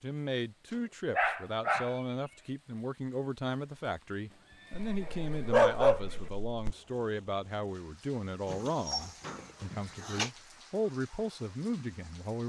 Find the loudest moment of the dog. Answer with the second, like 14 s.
6 s.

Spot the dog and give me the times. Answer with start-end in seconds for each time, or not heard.
1.1-1.9, 4.8-6.8, 8.4-10.3.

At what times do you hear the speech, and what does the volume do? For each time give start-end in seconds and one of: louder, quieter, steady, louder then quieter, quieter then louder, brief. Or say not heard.
0.0-12.4 steady.